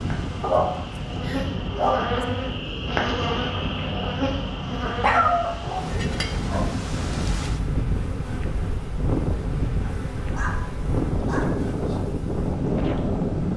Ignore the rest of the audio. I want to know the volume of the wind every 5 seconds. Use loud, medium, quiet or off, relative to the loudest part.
medium, loud, loud.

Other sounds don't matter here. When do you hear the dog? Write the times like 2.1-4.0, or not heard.
0.4-2.1, 5.0-6.7, 9.8-11.6.